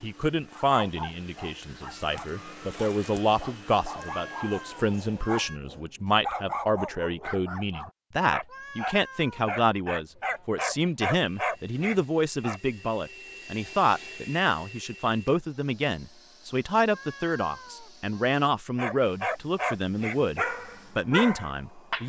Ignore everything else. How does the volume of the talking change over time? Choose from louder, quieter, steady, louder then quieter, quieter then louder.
steady.